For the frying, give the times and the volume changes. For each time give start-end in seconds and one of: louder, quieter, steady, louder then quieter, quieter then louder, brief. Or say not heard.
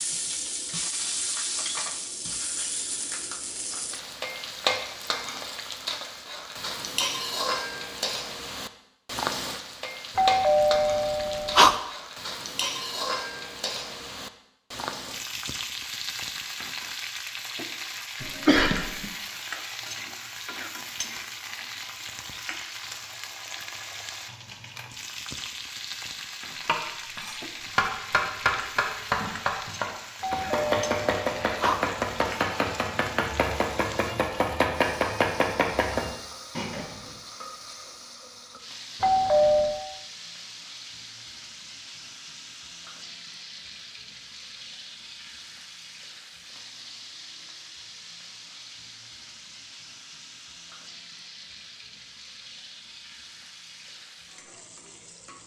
0.0-55.4 quieter.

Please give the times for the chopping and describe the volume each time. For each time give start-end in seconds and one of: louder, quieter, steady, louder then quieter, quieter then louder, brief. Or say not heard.
26.6-37.1 steady.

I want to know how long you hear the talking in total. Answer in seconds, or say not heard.
not heard.